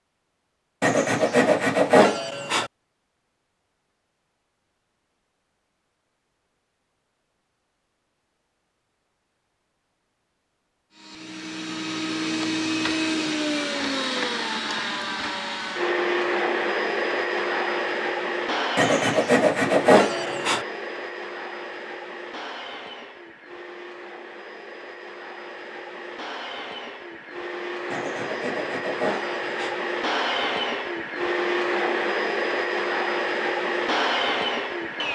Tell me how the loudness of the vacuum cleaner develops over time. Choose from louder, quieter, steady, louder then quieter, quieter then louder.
quieter then louder.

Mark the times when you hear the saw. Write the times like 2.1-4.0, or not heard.
0.8-2.7, 18.8-20.6, 27.9-29.8.